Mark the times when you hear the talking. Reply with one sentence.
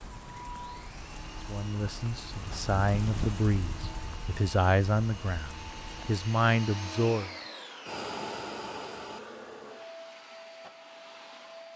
You can hear the talking from 1.4 to 7.3 s.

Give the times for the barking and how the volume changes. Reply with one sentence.
You can't hear the barking here.